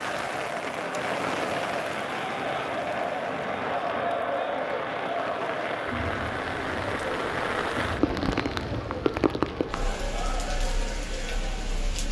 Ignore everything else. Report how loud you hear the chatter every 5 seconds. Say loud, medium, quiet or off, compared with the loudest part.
loud, loud, medium.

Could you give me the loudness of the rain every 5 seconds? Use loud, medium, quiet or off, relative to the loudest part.
loud, loud, medium.